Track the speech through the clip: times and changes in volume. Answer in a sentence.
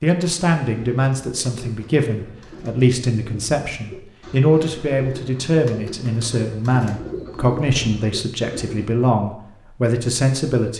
The speech can be heard from 0.0 to 10.7 s, at a steady volume.